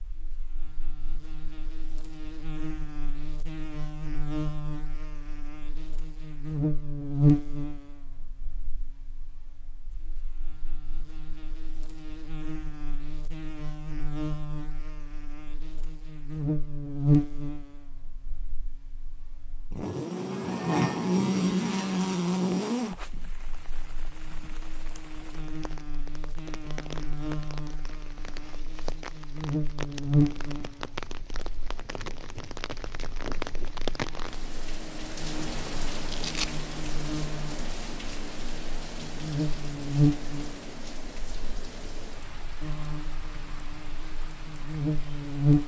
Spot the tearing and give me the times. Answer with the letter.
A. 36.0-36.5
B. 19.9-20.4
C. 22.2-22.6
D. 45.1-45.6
A.